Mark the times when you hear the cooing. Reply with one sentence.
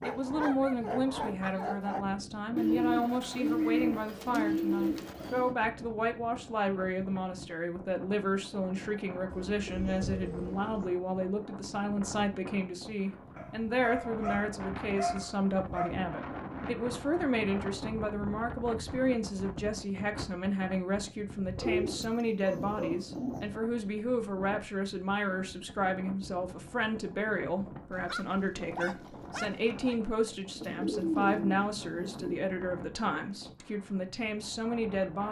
The cooing can be heard from 2.5 to 5.5 s, from 9.3 to 10.8 s, from 21.6 to 23.4 s and from 30.6 to 32.5 s.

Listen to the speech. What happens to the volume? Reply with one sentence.
The volume of the speech stays about the same.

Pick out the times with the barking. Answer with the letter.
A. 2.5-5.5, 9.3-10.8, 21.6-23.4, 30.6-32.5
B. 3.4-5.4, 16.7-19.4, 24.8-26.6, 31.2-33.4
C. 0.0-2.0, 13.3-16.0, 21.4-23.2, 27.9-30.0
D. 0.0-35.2
C.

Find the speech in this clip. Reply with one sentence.
You can hear the speech from 0.0 to 35.2 s.